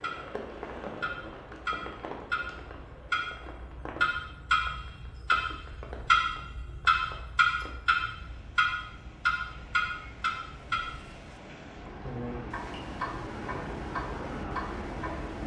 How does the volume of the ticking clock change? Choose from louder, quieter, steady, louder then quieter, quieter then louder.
louder then quieter.